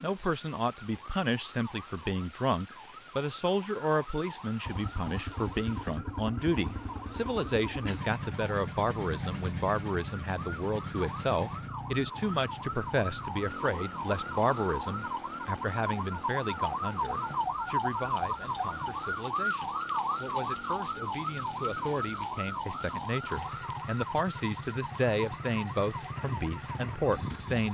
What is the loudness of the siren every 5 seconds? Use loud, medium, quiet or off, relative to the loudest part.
quiet, quiet, medium, loud, loud, medium.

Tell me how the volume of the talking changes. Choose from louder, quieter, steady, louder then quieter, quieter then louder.
quieter then louder.